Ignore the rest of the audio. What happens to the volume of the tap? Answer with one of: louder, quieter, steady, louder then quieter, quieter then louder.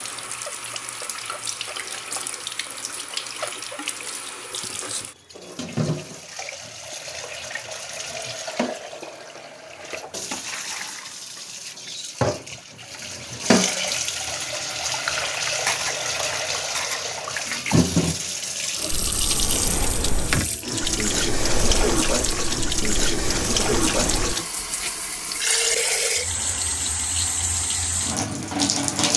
louder.